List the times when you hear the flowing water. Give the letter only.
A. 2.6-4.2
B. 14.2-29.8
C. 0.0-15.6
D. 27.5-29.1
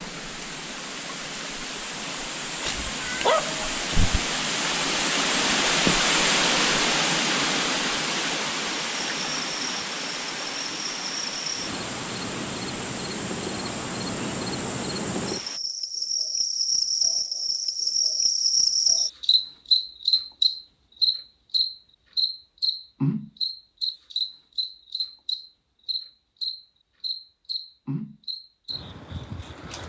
C.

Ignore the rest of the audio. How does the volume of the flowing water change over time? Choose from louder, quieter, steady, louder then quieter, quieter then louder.
louder then quieter.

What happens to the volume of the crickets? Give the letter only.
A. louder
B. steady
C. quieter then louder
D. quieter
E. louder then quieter
E.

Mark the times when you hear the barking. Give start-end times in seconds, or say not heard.
2.6-4.2.